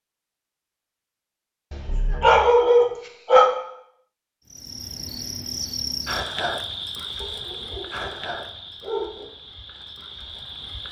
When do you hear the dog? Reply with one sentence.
The dog can be heard from 1.7 to 3.5 s, from 7.2 to 8.2 s and from 8.8 to 9.3 s.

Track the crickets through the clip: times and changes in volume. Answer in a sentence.
You can hear the crickets from 4.5 to 10.8 s, getting quieter.